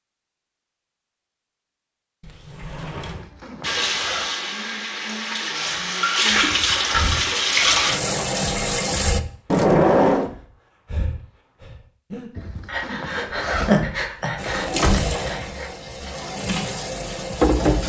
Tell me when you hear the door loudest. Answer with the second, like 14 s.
10 s.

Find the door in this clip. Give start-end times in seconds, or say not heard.
2.2-3.3, 9.4-10.3, 13.3-15.2.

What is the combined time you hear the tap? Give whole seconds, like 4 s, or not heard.
9 s.